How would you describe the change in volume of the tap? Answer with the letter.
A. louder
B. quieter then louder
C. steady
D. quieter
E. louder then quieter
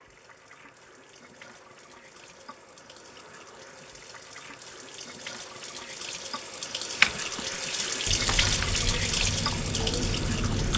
A.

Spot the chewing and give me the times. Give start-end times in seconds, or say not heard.
7.0-10.7.